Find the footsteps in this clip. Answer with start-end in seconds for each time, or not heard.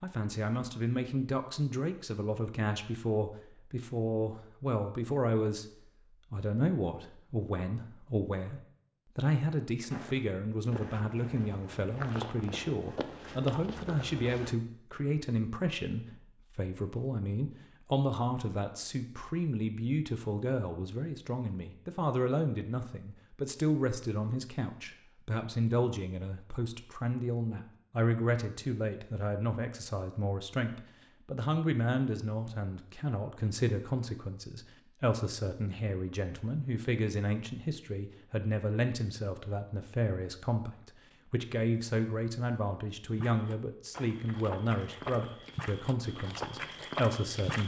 9.9-14.6, 43.1-47.6.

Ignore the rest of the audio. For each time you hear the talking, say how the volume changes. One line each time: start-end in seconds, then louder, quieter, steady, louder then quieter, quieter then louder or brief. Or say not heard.
0.0-5.7 steady
6.3-47.6 steady.